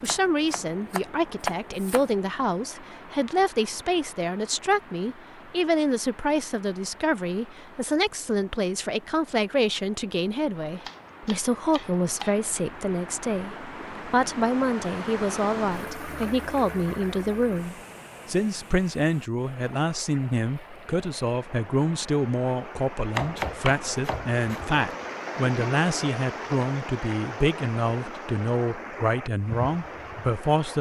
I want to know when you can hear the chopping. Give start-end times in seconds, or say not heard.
0.1-2.0, 10.8-12.4, 23.1-24.8.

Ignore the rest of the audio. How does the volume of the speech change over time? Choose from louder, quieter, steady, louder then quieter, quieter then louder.
steady.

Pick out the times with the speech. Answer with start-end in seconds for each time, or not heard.
0.0-30.7.